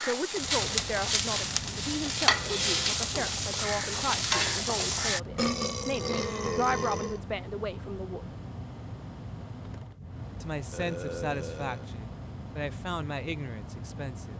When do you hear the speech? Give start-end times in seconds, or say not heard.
0.0-8.2, 10.4-14.3.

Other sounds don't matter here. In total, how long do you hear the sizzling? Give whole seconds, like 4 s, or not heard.
5 s.